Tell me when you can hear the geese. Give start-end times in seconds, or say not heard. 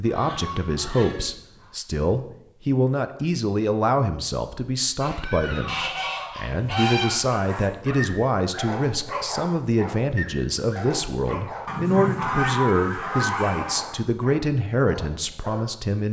0.1-1.7, 5.7-7.7, 11.7-13.9.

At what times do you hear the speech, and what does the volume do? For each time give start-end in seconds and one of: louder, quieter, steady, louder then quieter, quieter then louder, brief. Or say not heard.
0.0-16.0 steady.